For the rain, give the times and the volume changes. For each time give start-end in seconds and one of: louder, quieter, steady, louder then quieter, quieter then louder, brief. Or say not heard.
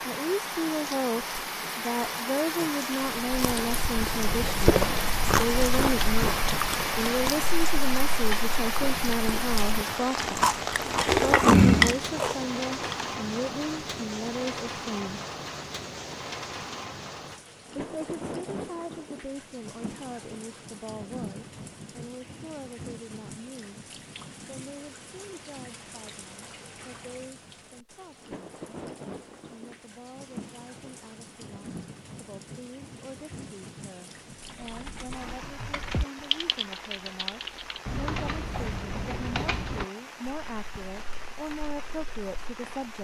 0.0-42.9 quieter.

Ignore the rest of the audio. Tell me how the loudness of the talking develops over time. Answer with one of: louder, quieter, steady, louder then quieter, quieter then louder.
quieter then louder.